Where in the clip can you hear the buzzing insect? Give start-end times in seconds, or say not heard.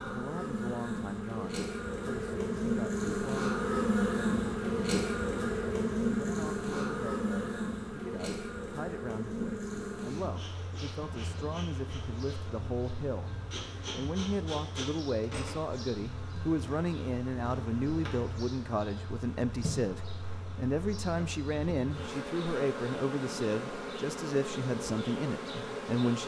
0.0-26.2.